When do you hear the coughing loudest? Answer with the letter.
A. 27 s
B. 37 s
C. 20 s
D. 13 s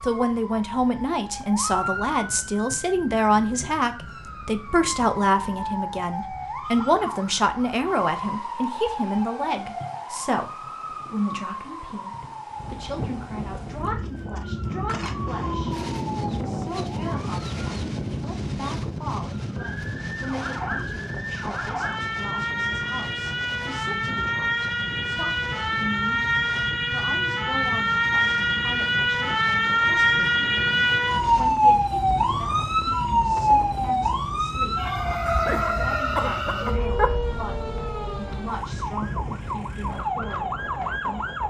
B.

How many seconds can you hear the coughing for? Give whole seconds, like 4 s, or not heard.
2 s.